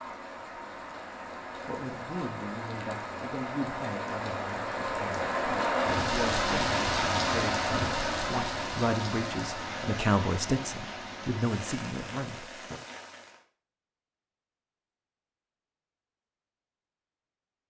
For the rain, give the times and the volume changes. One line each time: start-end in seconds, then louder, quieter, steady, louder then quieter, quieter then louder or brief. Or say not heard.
0.0-13.4 louder then quieter.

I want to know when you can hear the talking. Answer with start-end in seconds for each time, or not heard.
1.6-12.8.